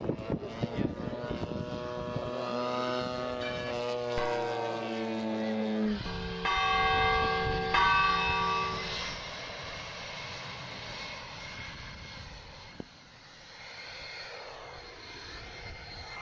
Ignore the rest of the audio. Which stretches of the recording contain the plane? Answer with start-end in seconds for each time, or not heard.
0.0-16.1.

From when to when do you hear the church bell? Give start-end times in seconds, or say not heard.
3.3-9.0.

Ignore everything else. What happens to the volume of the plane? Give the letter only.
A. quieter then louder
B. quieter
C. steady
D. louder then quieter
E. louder
B.